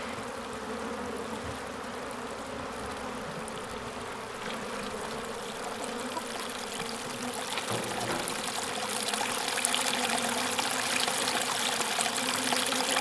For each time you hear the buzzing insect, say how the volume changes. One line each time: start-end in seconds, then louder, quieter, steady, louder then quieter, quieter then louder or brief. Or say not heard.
0.0-12.9 steady.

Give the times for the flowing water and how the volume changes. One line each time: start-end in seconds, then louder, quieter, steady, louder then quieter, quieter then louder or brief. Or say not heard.
0.0-12.9 louder.